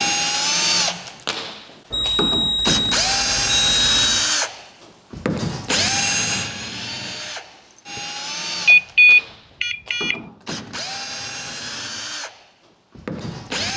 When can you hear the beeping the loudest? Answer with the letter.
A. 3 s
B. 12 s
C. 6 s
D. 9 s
D.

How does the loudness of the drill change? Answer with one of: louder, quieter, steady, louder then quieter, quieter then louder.
quieter.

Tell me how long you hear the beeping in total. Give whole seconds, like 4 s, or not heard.
4 s.